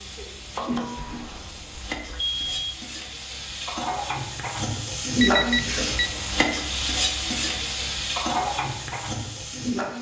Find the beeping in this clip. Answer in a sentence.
The beeping can be heard from 0.9 to 2.8 s and from 5.2 to 6.1 s.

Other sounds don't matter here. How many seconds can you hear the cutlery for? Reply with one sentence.
You can't hear the cutlery here.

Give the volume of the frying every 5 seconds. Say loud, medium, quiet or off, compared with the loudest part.
medium, loud.